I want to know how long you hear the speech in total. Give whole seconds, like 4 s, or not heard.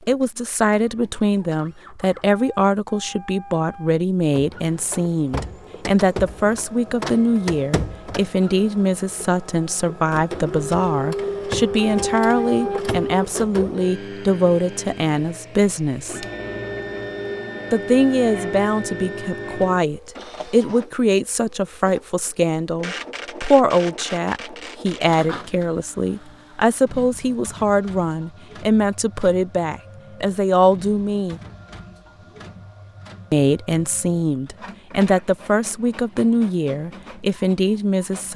35 s.